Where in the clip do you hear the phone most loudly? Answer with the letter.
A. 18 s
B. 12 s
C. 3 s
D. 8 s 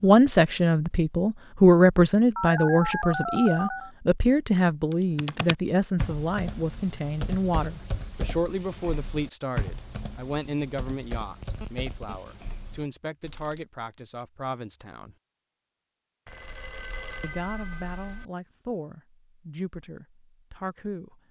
C.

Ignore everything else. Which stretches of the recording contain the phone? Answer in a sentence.
The phone can be heard from 2.4 to 3.9 s, from 11.4 to 12.3 s and from 16.2 to 18.2 s.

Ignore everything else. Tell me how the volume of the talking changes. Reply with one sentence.
The volume of the talking goes down.